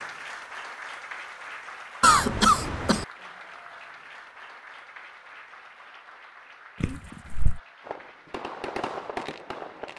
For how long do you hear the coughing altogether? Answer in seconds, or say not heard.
2 s.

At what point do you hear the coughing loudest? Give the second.
2 s.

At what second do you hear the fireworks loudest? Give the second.
9 s.